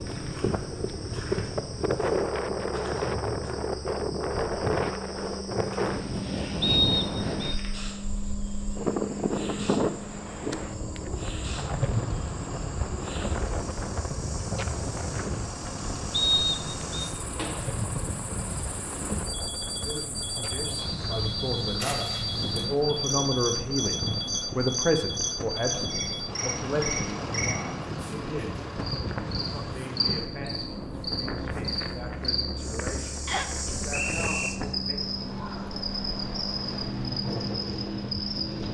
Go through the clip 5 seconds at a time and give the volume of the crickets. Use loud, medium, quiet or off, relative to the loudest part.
medium, medium, medium, medium, loud, loud, loud, loud.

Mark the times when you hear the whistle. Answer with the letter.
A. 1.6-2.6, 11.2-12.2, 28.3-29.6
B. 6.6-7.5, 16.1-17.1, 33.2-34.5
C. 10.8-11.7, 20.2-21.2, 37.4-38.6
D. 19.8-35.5
B.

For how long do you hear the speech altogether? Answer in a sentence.
You can hear the speech for 16 seconds altogether.